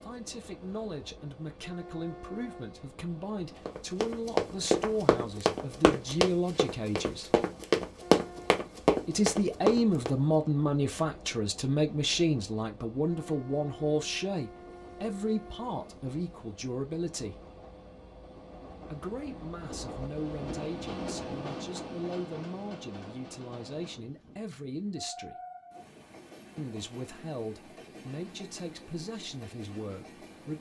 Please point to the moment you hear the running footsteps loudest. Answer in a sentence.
The loudest moment of the running footsteps is at 8 seconds.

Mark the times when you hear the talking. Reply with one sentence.
You can hear the talking from 0.0 to 7.4 s, from 9.1 to 17.4 s, from 18.9 to 25.4 s and from 26.6 to 30.5 s.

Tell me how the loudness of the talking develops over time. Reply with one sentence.
The loudness of the talking goes up, then down.